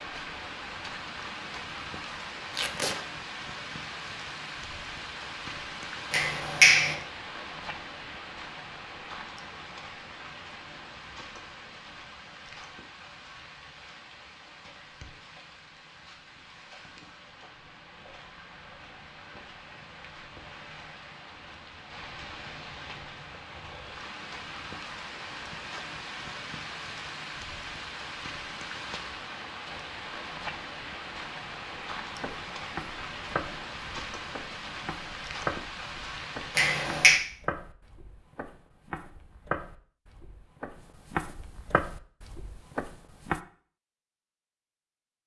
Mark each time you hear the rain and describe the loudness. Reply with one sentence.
The rain can be heard from 0.0 to 36.8 s, getting quieter then louder.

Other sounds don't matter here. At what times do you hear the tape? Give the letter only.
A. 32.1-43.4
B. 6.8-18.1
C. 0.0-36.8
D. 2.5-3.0
D.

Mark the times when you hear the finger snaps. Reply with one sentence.
You can hear the finger snaps from 6.1 to 7.0 s and from 36.5 to 37.2 s.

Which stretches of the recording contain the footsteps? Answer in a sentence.
You can hear the footsteps from 32.1 to 43.4 s.